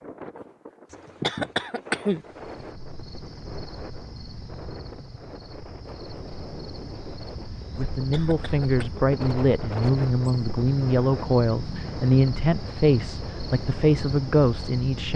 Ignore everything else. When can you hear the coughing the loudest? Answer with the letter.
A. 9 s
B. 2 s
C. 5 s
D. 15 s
B.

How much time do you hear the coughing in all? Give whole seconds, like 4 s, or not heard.
3 s.